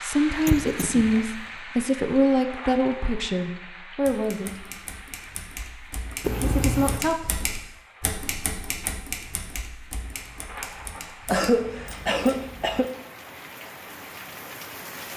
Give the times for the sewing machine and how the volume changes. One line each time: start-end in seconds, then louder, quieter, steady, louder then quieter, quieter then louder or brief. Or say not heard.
not heard.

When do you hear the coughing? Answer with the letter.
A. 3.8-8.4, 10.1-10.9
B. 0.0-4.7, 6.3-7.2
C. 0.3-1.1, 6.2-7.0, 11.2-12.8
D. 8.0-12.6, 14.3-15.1
C.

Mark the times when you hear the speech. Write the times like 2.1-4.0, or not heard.
0.0-4.7, 6.3-7.2.